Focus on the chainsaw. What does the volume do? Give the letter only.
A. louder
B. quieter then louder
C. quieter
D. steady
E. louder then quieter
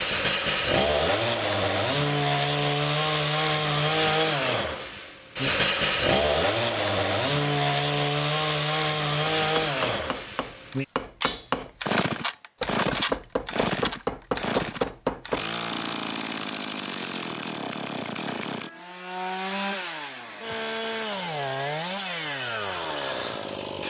C.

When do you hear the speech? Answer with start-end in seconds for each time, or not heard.
not heard.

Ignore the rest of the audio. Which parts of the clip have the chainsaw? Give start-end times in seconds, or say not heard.
0.0-23.8.